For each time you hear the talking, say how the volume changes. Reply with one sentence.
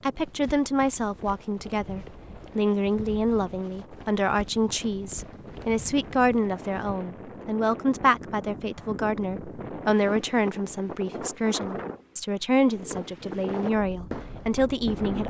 You can hear the talking from 0.0 to 15.2 s, at a steady volume.